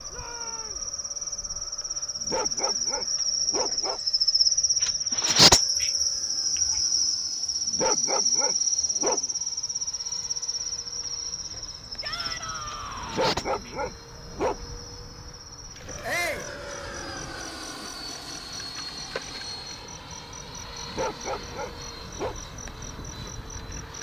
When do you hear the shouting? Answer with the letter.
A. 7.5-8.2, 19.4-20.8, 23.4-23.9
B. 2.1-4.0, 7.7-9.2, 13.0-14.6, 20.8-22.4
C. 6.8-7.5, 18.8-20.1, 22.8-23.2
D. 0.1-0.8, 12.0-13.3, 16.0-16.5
D.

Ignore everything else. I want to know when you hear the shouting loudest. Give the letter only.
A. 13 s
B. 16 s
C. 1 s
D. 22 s
B.